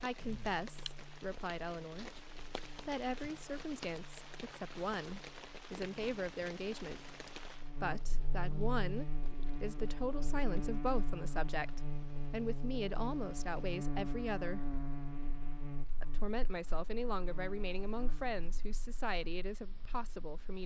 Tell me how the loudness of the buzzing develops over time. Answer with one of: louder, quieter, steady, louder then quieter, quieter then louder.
louder then quieter.